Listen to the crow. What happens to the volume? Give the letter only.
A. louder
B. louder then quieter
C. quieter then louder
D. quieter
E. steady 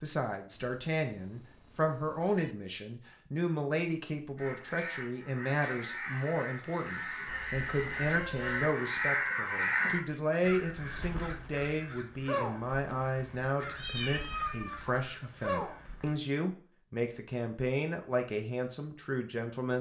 B.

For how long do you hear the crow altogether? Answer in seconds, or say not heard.
12 s.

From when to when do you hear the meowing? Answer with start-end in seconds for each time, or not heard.
0.5-2.5, 7.2-8.7, 13.8-14.8.